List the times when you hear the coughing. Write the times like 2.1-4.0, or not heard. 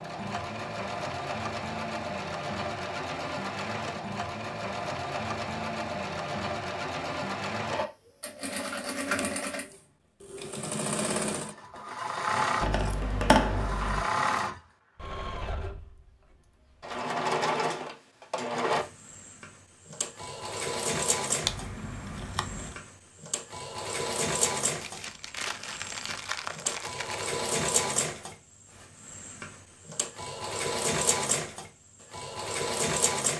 not heard.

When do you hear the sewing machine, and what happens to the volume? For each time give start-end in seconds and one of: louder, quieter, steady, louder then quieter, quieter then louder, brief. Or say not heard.
0.0-33.3 steady.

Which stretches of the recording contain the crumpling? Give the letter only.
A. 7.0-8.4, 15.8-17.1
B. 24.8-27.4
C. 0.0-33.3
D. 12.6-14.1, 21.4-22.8
B.